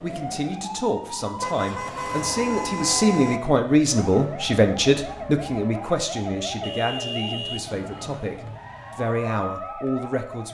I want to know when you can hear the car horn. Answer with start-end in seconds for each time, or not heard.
1.4-3.4, 6.3-8.2.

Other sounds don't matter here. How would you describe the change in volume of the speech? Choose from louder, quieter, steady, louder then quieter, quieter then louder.
louder then quieter.